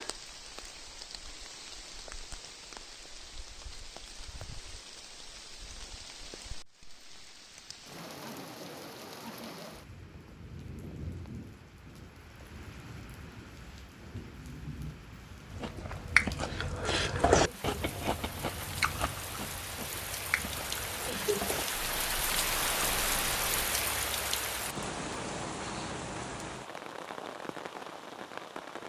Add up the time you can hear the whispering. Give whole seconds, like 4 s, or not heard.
not heard.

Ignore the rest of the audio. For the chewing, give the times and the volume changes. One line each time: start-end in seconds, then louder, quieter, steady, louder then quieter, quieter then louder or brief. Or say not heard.
15.5-23.6 quieter.